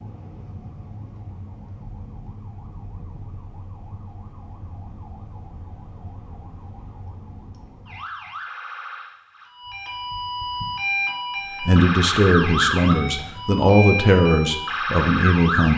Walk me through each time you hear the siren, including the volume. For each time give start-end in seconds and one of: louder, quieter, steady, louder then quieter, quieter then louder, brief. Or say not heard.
0.0-15.7 louder.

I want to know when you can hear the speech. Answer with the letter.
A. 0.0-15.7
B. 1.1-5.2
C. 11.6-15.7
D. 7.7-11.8
C.